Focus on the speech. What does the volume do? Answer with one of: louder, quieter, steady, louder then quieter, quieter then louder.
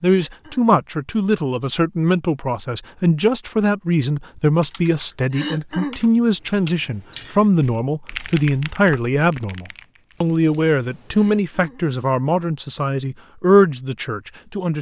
steady.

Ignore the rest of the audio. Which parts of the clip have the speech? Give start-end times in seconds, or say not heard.
0.0-14.7.